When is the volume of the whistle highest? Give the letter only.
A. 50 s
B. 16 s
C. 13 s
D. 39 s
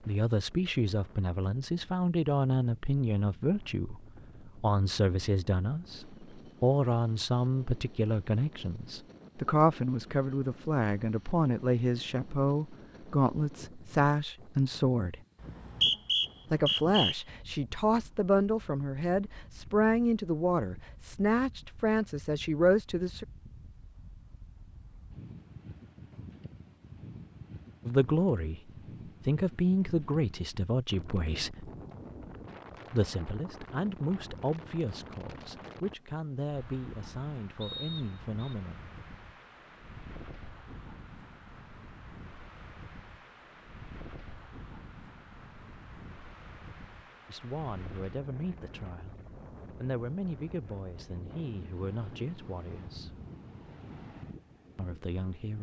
B.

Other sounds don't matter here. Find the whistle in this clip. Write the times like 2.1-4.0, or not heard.
15.4-17.1, 37.6-38.3.